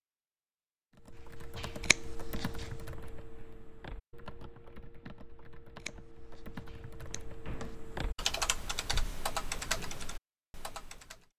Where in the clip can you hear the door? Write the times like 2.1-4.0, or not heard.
1.1-1.9, 6.7-7.8.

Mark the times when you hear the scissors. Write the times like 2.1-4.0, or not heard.
1.8-2.6, 5.8-7.8.